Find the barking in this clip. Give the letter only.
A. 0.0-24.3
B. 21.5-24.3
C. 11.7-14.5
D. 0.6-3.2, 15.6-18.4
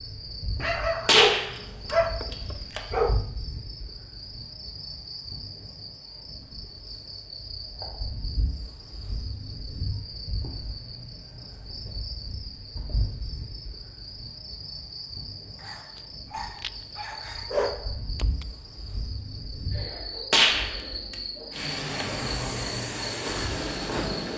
D.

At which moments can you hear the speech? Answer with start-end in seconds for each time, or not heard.
not heard.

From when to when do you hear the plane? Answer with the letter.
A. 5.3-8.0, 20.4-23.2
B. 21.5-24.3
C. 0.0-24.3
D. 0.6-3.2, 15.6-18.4
B.